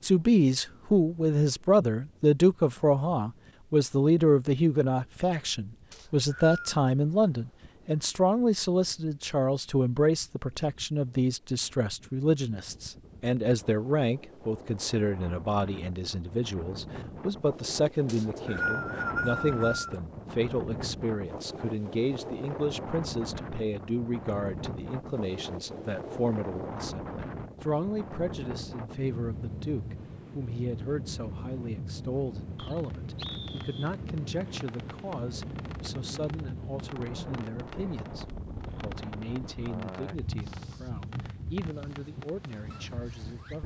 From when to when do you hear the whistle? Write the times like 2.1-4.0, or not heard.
5.9-6.8, 18.1-20.0, 32.5-33.9.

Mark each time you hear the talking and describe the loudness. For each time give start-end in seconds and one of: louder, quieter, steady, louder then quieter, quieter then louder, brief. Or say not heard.
0.0-43.6 quieter.